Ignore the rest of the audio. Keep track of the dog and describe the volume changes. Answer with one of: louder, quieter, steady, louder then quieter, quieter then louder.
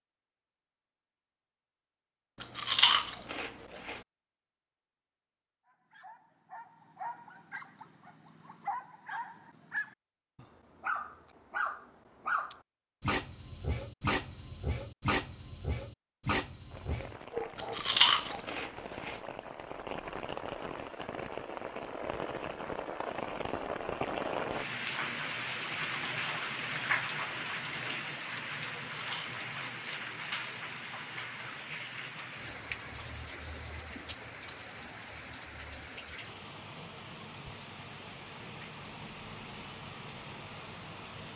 louder.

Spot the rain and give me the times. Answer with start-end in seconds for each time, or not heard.
16.7-41.3.